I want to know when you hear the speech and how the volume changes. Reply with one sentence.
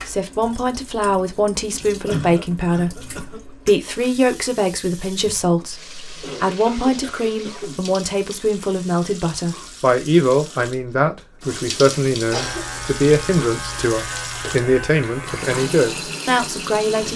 The speech can be heard from 0.1 to 17.1 s, at a steady volume.